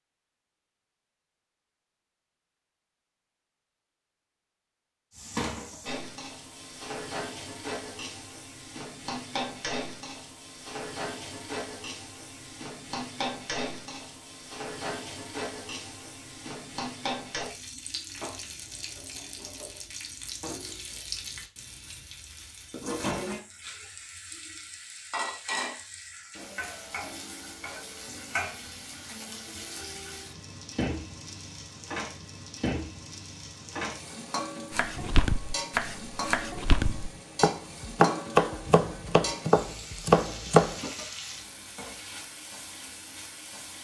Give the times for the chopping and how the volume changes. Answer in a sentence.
The chopping can be heard from 34.7 to 40.8 s, getting louder.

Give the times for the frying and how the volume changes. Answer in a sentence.
You can hear the frying from 5.1 to 43.8 s, at a steady volume.